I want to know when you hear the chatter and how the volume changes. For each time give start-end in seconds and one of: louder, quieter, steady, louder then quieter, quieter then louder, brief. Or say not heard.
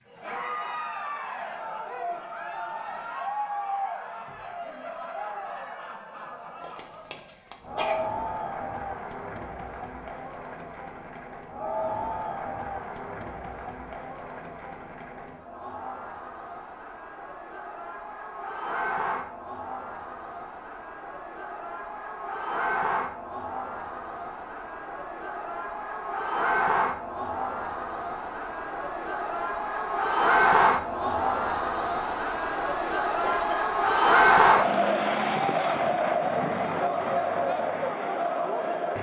0.1-38.9 louder.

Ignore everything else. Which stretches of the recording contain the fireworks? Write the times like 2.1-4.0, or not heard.
not heard.